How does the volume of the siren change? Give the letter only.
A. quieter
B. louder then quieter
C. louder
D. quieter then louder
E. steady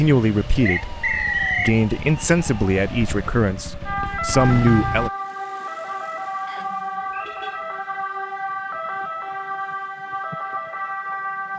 C.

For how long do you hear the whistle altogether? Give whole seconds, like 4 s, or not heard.
2 s.